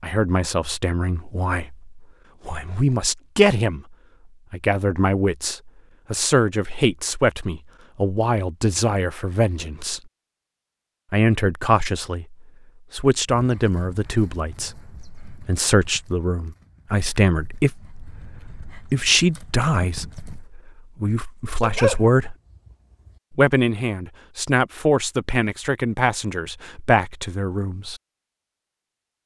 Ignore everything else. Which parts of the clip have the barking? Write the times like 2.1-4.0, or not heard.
21.6-23.1.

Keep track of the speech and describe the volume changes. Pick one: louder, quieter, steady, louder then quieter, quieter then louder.
steady.